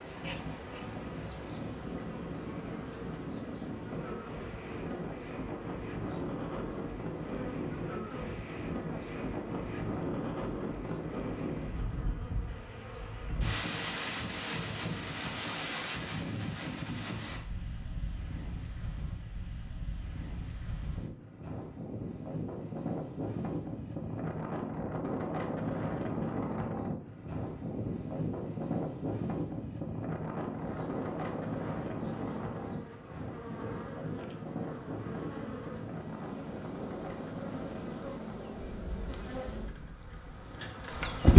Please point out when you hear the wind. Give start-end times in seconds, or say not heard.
0.0-41.0.